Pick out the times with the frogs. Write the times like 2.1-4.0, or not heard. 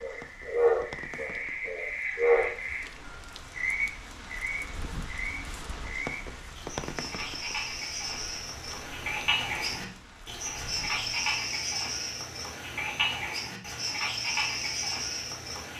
0.0-15.7.